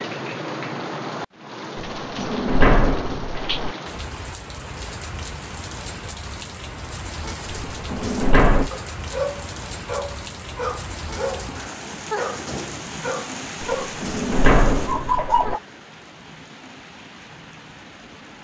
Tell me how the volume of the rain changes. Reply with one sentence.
The volume of the rain goes down.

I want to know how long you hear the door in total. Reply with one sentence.
The door can be heard for 5 seconds in total.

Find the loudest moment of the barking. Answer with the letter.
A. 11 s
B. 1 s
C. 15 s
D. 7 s
C.